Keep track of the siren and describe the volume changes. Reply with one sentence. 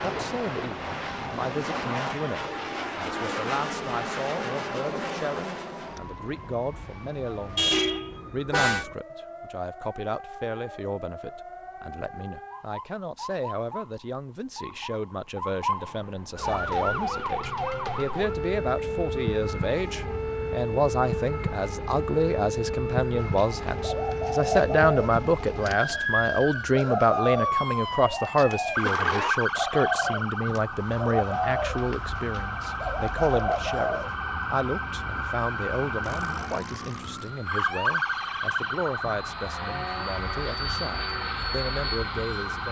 The volume of the siren goes up.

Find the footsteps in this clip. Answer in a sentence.
You can't hear the footsteps here.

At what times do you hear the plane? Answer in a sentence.
You can hear the plane from 0.0 to 8.0 s and from 36.0 to 42.6 s.